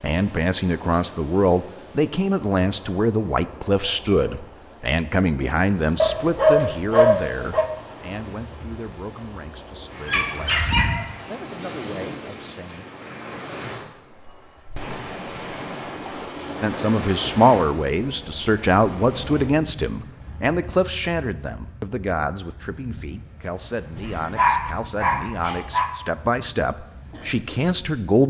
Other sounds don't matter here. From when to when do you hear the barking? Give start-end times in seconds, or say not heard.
6.0-7.7, 10.1-11.1, 23.9-25.9.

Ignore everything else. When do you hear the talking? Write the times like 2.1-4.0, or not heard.
0.0-12.8, 16.6-28.2.